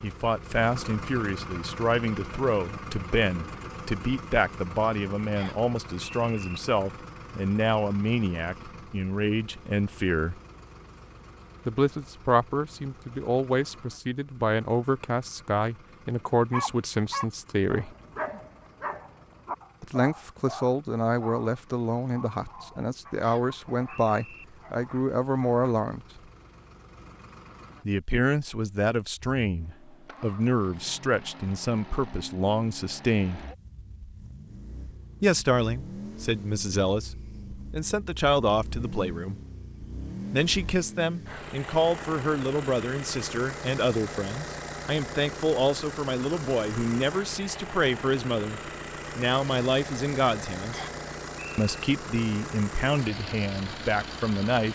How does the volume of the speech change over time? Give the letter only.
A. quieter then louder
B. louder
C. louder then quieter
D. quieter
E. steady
E.